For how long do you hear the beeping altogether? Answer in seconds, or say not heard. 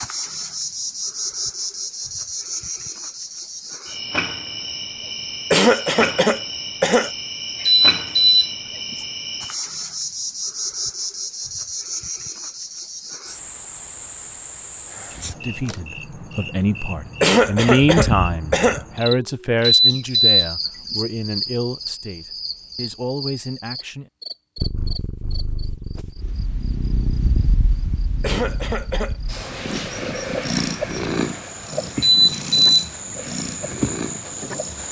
3 s.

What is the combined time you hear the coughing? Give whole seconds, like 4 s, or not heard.
5 s.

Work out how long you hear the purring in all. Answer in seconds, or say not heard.
10 s.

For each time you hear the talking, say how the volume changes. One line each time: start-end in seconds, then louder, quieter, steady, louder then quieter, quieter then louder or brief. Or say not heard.
15.4-24.1 louder then quieter.